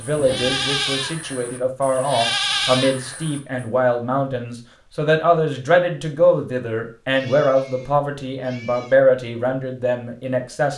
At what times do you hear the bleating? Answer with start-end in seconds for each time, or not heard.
0.0-3.4.